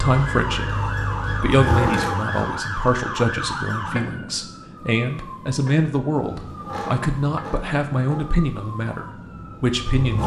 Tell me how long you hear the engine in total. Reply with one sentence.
You can hear the engine for 7 seconds altogether.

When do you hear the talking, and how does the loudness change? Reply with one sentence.
You can hear the talking from 0.0 to 10.2 s, at a steady volume.